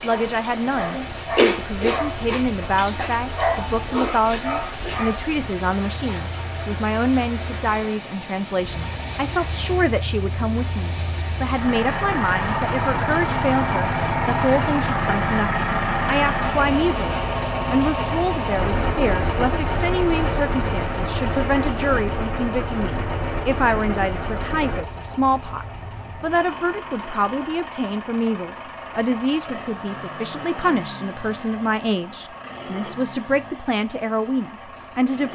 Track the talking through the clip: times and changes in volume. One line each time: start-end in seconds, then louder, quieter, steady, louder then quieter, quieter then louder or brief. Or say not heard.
0.0-35.3 steady.